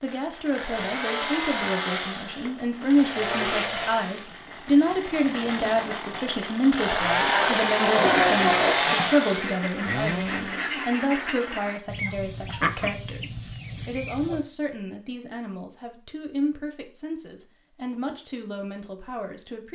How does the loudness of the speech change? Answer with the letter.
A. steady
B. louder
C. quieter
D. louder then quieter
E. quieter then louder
C.